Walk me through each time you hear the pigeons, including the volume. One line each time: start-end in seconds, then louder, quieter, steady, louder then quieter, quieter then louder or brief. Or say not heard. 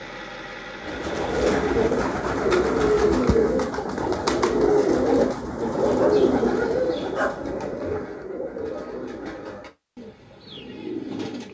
0.8-11.5 quieter.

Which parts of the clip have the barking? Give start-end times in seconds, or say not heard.
6.0-7.5.